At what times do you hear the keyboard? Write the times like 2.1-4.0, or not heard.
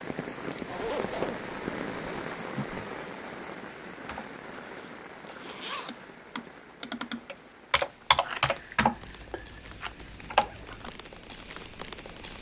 4.0-11.4.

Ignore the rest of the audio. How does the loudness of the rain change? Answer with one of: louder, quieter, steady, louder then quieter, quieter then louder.
quieter then louder.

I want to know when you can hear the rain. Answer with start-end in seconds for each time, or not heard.
0.0-12.3.